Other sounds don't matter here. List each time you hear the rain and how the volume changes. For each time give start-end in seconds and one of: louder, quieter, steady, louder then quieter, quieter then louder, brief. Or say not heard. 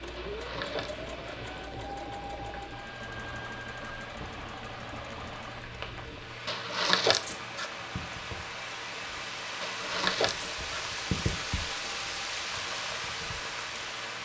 0.0-14.1 louder.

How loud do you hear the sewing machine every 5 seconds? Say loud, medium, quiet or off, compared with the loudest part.
loud, medium, medium.